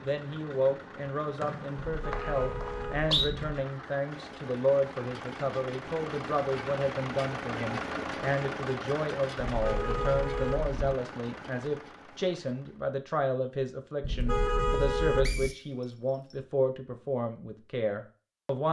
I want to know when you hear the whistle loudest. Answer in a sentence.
The loudest moment of the whistle is at 3 seconds.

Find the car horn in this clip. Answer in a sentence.
You can hear the car horn from 1.8 to 3.6 s, from 9.4 to 10.8 s and from 14.0 to 15.6 s.